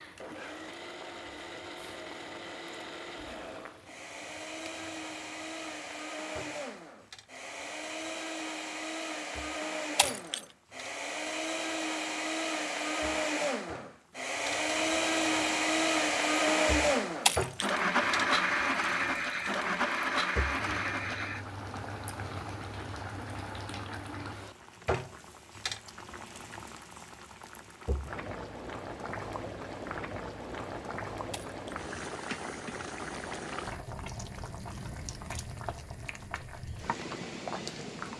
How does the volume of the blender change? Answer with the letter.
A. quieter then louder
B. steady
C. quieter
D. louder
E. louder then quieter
D.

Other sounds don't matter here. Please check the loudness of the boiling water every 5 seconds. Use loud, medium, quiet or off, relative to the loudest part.
quiet, quiet, medium, loud, loud, loud, loud, loud.